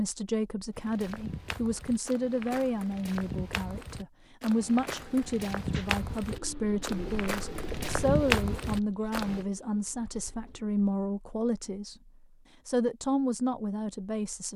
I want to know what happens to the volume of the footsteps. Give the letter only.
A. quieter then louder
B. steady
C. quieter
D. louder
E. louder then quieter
D.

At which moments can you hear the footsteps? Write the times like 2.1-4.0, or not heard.
0.8-9.4.